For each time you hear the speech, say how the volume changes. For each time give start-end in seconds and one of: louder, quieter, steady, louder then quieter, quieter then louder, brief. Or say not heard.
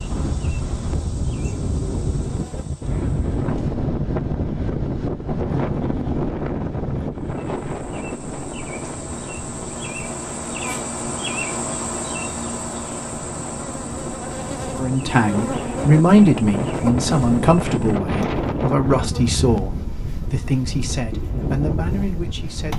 14.8-22.7 quieter.